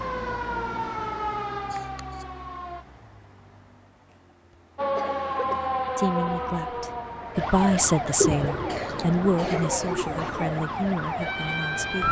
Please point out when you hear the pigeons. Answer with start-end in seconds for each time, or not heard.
8.2-10.6.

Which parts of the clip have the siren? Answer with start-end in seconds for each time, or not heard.
0.0-2.9, 4.8-12.0.